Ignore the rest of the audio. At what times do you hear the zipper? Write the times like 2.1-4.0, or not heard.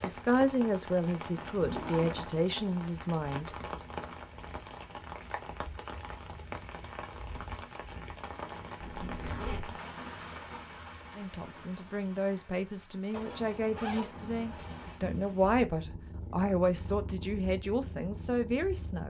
1.3-2.4, 8.8-9.8, 13.1-15.0.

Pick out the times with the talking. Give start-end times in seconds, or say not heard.
0.0-3.5, 11.2-19.0.